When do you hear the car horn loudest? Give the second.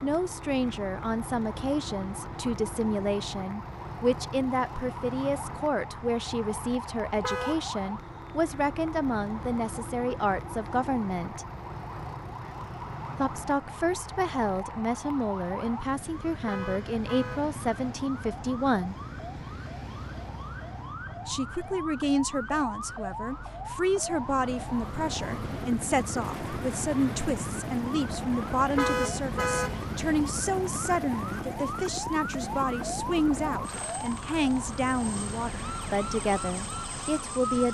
29 s.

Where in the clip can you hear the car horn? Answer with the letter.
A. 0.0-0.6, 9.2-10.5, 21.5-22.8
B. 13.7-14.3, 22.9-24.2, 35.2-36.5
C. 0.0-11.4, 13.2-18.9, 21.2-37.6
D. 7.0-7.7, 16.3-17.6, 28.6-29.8
D.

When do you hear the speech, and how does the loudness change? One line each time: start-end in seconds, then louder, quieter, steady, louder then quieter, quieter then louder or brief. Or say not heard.
0.0-11.4 steady
13.2-18.9 steady
21.2-37.6 steady.